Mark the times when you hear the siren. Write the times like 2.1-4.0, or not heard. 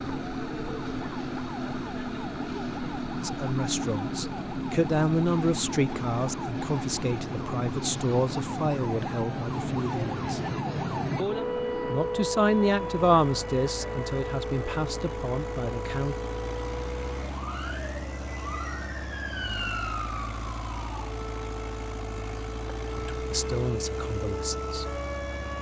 0.0-25.5.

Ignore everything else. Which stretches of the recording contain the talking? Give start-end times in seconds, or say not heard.
3.2-10.4, 11.8-16.1, 22.9-24.9.